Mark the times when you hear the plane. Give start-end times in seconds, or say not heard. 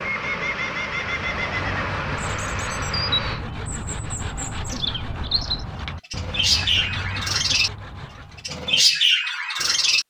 0.0-3.5.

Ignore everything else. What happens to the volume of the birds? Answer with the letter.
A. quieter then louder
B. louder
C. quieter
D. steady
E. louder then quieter
B.